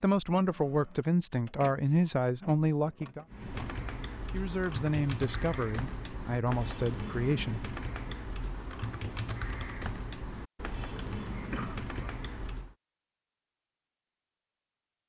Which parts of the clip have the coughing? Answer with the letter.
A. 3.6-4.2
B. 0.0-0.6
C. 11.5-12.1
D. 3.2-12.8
C.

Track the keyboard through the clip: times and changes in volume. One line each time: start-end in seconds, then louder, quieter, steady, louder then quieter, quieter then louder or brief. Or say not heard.
3.2-12.8 steady.